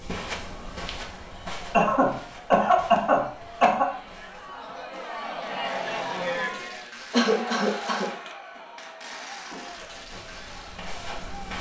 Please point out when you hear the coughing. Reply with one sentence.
The coughing can be heard from 1.7 to 3.9 s and from 7.1 to 8.1 s.